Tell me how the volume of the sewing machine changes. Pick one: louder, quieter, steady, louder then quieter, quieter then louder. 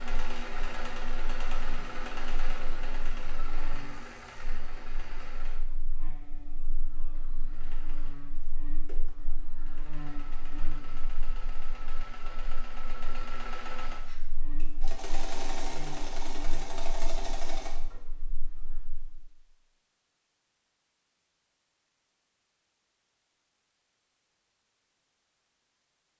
quieter then louder.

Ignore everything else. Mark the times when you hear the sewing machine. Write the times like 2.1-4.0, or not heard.
0.0-18.0.